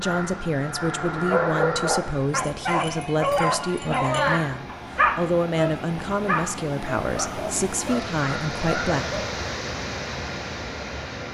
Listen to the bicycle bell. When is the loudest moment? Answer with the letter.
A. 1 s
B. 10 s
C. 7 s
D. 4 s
D.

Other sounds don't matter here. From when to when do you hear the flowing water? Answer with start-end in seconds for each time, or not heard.
0.0-11.2.